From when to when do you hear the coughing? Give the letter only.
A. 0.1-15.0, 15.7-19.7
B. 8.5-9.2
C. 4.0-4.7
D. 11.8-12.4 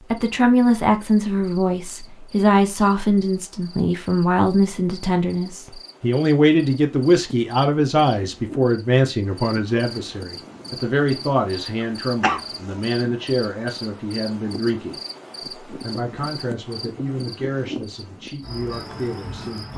D.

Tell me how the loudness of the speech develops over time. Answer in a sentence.
The loudness of the speech goes down.